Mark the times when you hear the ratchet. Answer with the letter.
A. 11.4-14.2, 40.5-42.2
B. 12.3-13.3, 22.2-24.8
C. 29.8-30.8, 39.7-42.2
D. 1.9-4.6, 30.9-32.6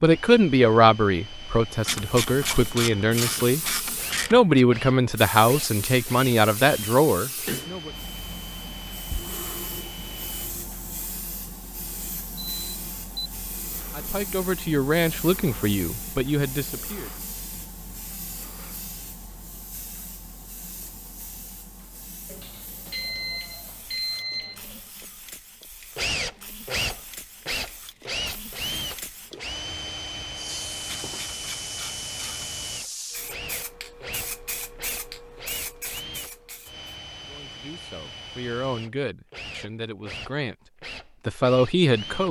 D.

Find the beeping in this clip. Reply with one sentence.
You can hear the beeping from 12.3 to 13.3 s and from 22.2 to 24.8 s.